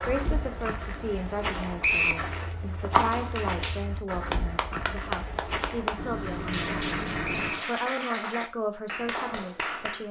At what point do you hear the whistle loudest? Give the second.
2 s.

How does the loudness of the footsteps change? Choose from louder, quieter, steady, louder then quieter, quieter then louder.
louder then quieter.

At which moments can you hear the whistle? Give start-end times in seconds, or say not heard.
1.8-2.2, 7.2-7.7.